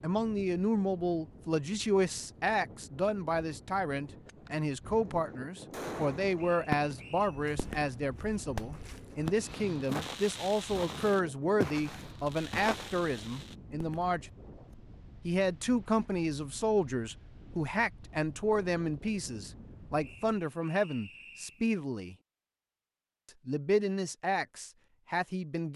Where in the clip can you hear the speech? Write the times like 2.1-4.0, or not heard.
0.0-14.3, 15.2-22.1, 23.4-25.7.